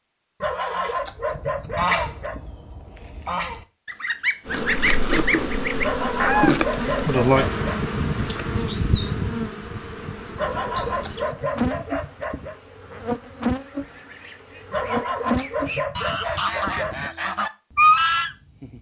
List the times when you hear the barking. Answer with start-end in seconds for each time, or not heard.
0.4-2.4, 5.8-7.8, 10.3-12.6, 14.7-17.1.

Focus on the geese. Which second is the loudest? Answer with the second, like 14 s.
18 s.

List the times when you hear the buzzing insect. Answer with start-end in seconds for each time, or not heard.
4.5-15.8.